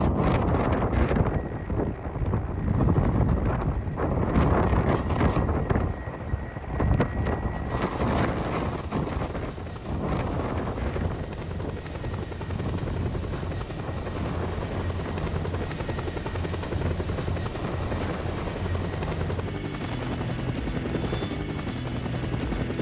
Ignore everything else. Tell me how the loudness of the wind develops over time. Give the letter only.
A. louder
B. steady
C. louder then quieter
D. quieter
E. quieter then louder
D.